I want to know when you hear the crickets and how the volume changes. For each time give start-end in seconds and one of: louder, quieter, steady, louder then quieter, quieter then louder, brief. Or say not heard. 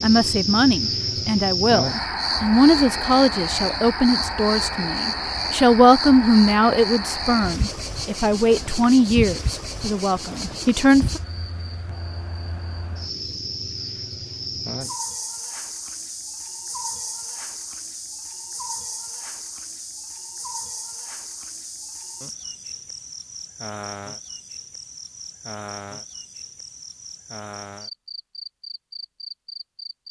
0.0-30.0 quieter.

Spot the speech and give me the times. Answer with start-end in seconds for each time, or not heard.
0.0-11.2.